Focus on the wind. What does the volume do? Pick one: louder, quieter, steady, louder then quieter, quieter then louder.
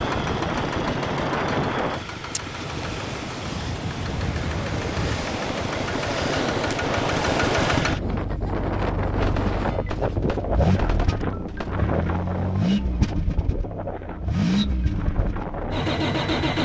quieter.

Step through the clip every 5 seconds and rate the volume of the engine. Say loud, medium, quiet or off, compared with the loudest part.
medium, loud, loud, loud.